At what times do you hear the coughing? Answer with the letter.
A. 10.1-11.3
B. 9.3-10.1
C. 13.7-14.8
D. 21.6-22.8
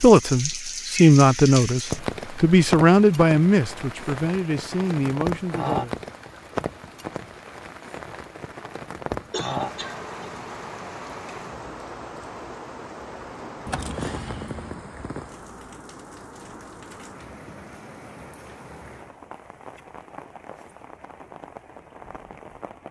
B.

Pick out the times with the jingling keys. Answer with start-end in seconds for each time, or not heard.
13.7-14.8.